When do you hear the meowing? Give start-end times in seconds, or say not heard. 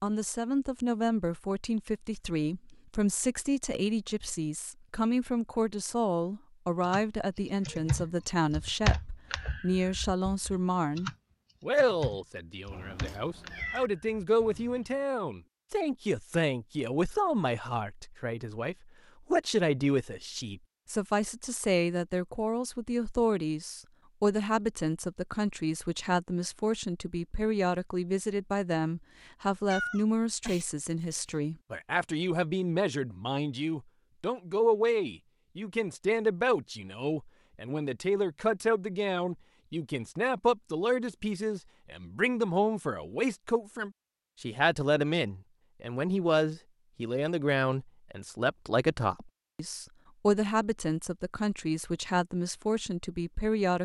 12.7-13.9, 29.7-31.2.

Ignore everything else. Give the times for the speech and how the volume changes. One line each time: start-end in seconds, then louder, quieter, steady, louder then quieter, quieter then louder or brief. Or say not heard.
0.0-53.8 steady.